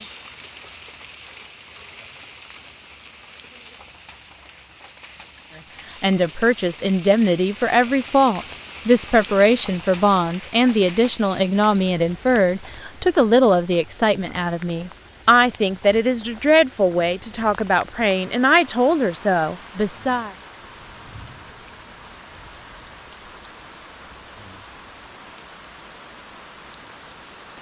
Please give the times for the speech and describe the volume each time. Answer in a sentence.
The speech can be heard from 6.0 to 20.3 s, at a steady volume.